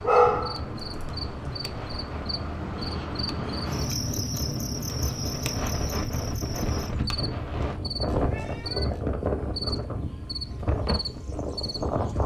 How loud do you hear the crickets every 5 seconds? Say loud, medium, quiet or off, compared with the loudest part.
loud, loud, medium.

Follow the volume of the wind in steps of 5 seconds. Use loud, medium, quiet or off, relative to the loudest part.
medium, loud, loud.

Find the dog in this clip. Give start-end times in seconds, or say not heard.
0.0-1.6.